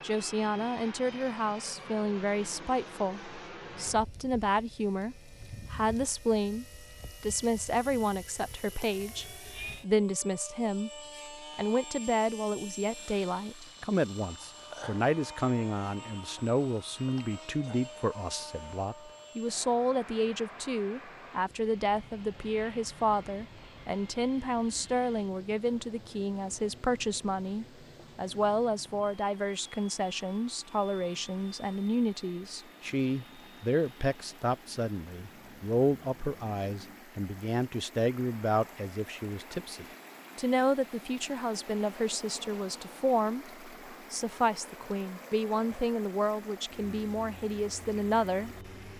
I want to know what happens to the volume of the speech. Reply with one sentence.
The volume of the speech stays about the same.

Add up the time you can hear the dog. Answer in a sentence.
You can't hear the dog here.